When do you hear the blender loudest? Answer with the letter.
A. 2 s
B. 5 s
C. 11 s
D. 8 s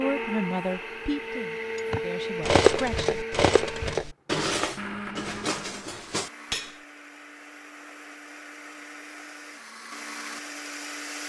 A.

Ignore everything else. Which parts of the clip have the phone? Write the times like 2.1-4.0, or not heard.
not heard.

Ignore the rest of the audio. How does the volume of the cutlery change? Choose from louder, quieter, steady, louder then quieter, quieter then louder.
quieter.